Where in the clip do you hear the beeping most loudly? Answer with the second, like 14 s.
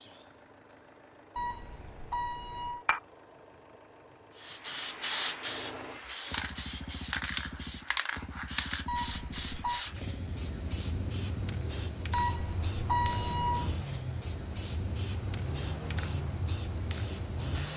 13 s.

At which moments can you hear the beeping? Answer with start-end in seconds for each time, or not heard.
1.4-2.9, 8.8-9.8, 12.1-13.7.